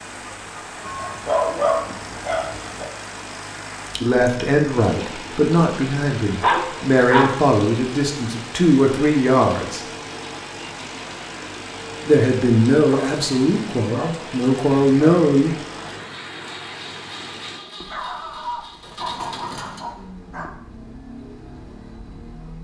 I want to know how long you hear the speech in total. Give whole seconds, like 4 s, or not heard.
9 s.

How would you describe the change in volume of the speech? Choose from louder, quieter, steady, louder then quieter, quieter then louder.
steady.